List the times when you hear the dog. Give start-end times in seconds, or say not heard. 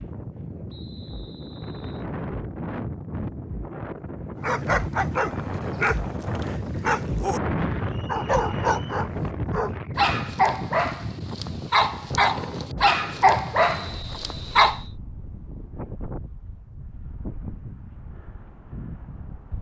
4.4-7.4, 8.1-14.8.